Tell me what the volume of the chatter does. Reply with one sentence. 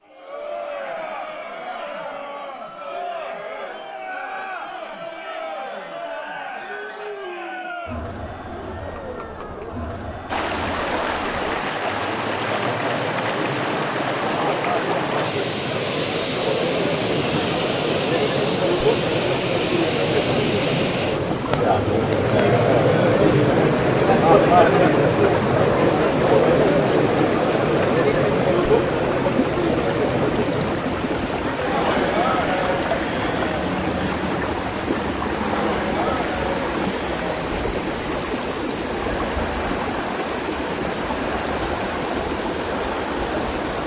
The volume of the chatter goes up, then down.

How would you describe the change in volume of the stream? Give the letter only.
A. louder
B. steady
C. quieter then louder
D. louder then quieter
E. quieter
B.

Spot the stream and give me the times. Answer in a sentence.
You can hear the stream from 10.2 to 43.8 s.